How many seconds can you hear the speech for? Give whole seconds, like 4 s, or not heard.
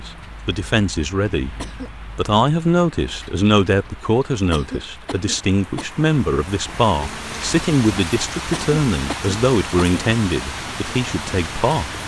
11 s.